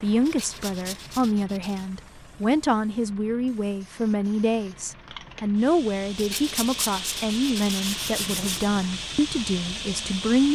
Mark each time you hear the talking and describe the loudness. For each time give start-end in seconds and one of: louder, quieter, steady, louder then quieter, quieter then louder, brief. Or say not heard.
0.0-10.4 steady.